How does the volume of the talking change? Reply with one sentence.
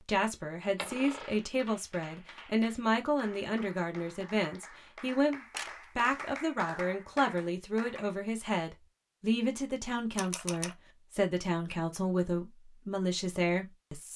The loudness of the talking stays about the same.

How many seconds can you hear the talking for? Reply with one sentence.
You can hear the talking for 14 seconds altogether.